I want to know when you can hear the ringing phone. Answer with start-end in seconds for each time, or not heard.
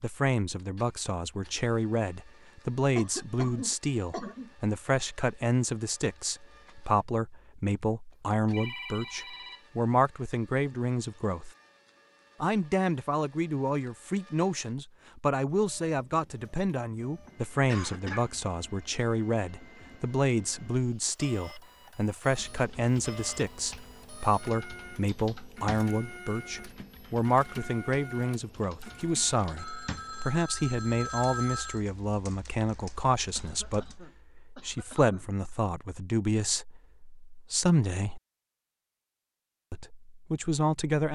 8.5-9.7, 29.6-31.8.